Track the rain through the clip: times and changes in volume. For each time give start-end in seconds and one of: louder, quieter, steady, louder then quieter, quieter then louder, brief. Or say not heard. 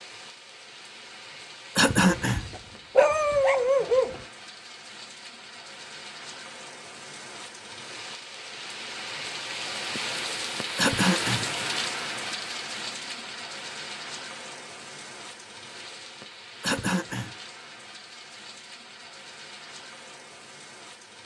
0.0-21.2 louder then quieter.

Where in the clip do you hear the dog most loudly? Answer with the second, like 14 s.
3 s.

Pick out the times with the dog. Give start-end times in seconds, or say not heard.
2.0-4.2.